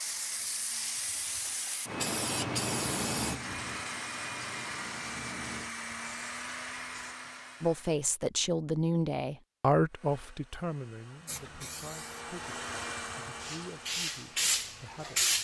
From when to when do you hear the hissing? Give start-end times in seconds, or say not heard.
0.0-7.2, 11.2-15.3.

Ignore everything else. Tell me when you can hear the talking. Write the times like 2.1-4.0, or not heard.
7.6-15.3.